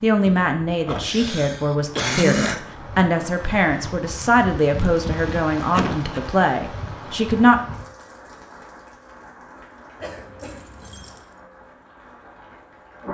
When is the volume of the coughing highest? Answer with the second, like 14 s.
2 s.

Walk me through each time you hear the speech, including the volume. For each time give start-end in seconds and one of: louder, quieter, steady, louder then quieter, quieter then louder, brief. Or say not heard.
0.0-7.6 steady.